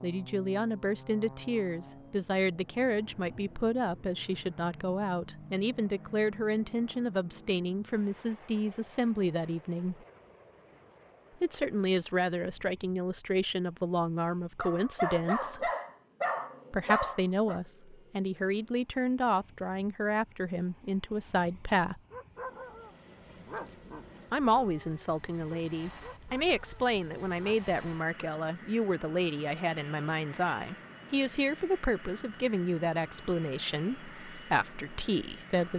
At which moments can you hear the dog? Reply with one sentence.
The dog can be heard from 14.6 to 17.6 s and from 22.1 to 27.7 s.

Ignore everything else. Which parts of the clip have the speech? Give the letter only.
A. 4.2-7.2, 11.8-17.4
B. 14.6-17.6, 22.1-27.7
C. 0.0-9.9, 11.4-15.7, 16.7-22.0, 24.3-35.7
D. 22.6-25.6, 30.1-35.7
C.